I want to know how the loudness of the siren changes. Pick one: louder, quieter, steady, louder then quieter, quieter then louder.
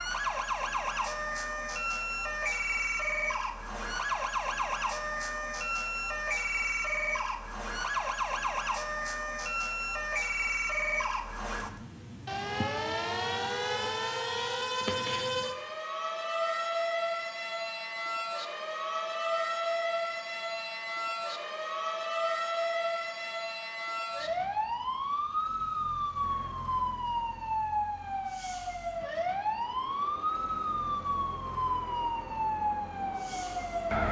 steady.